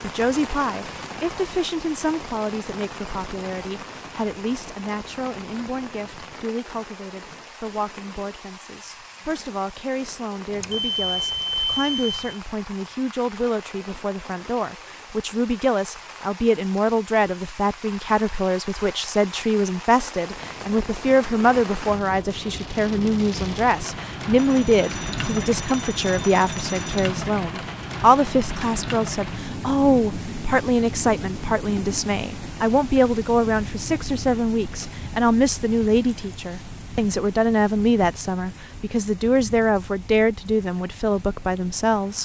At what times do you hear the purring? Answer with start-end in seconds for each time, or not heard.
not heard.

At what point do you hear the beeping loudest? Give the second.
12 s.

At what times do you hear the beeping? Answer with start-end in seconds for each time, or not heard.
10.6-12.4, 24.4-27.1.